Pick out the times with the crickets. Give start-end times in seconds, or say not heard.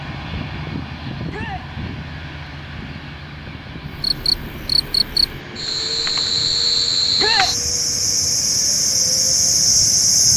3.9-10.3.